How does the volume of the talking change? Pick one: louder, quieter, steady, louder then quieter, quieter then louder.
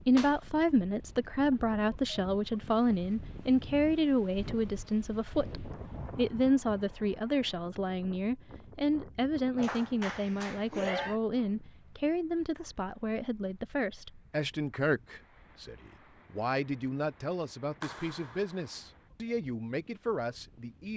quieter.